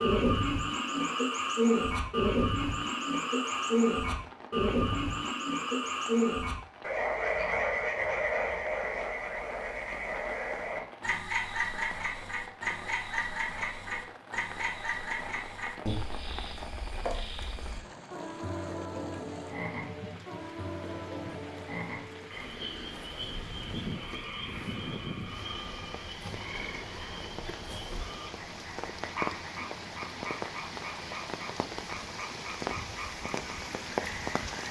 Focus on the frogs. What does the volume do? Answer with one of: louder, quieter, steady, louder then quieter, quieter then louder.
quieter.